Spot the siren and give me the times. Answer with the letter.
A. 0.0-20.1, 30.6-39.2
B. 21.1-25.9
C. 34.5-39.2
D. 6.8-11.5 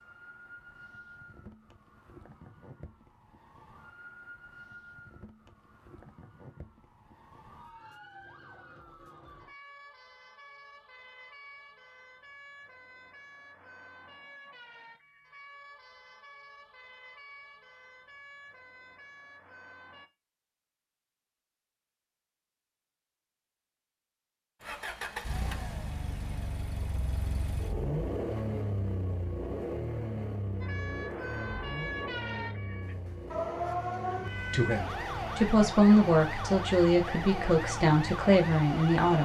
A.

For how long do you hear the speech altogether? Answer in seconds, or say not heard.
5 s.